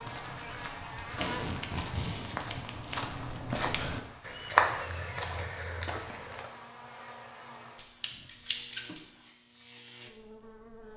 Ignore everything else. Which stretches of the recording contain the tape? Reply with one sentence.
You can hear the tape from 1.0 to 2.0 s.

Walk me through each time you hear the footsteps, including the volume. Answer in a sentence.
You can hear the footsteps from 0.0 to 6.5 s, getting louder then quieter.